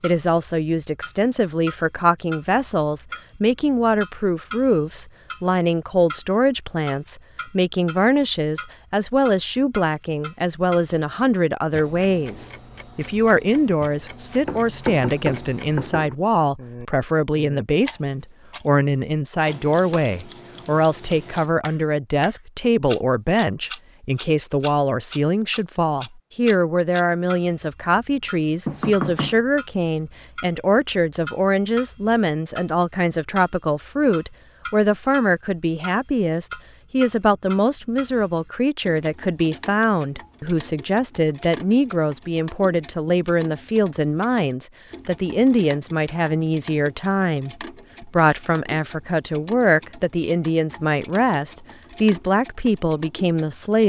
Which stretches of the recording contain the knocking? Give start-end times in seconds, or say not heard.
14.4-16.1, 28.6-29.4.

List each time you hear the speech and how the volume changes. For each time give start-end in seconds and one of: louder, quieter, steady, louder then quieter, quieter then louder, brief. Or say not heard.
0.0-53.8 steady.